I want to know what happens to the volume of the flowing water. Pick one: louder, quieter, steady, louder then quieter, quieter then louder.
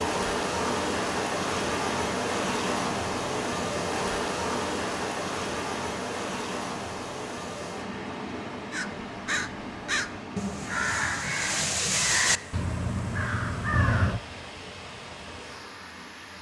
quieter.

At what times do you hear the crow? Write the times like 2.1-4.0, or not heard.
8.7-14.2.